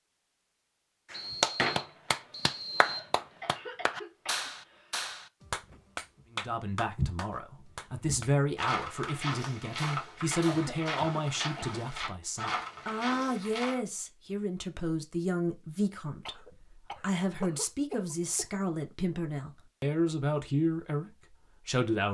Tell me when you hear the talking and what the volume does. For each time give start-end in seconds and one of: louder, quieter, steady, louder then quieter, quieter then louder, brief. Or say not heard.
6.3-22.0 steady.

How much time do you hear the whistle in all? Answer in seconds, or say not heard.
2 s.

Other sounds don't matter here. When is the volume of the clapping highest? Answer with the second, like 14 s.
2 s.